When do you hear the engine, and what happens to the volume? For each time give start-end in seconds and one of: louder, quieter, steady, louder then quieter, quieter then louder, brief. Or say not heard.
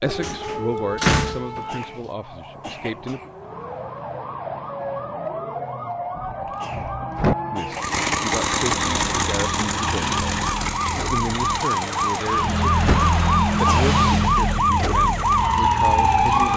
7.7-16.5 quieter.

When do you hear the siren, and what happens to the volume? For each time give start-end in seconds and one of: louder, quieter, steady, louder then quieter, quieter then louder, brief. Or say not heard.
0.0-16.5 louder.